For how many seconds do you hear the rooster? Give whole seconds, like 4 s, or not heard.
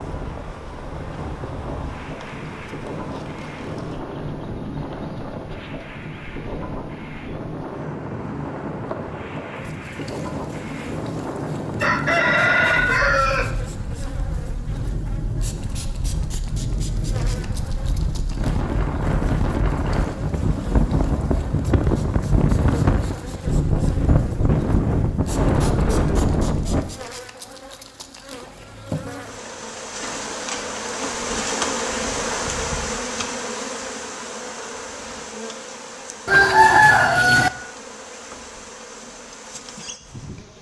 3 s.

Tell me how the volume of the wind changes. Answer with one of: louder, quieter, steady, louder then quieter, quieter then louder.
louder.